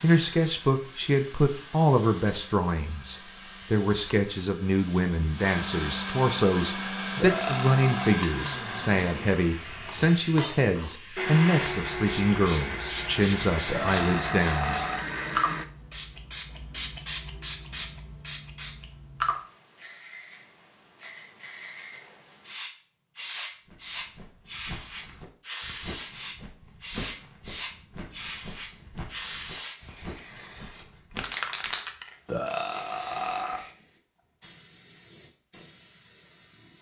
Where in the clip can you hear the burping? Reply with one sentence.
You can hear the burping from 7.2 to 8.2 s, from 13.7 to 15.1 s and from 32.2 to 33.6 s.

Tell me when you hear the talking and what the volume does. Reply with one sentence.
The talking can be heard from 0.0 to 14.8 s, at a steady volume.